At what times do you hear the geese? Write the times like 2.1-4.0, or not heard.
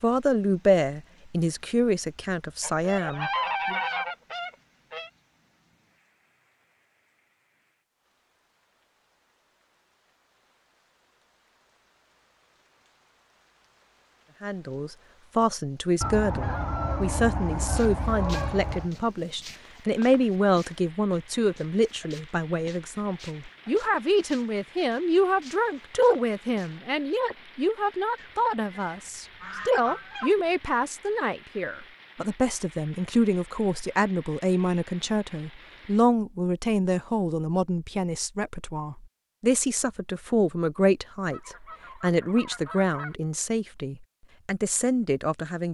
2.6-5.1, 16.0-18.9, 28.1-30.4, 41.3-43.1.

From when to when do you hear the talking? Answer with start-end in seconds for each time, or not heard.
0.0-3.8, 14.4-45.7.